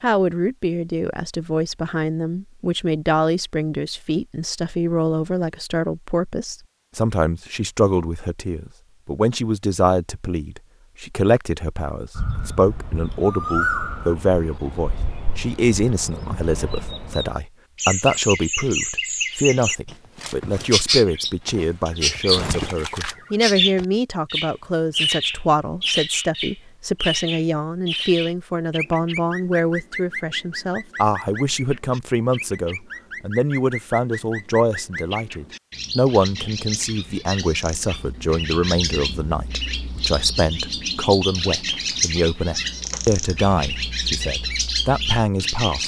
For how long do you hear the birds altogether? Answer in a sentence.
The birds can be heard for 34 seconds in total.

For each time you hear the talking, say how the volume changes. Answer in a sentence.
The talking can be heard from 0.0 to 45.8 s, at a steady volume.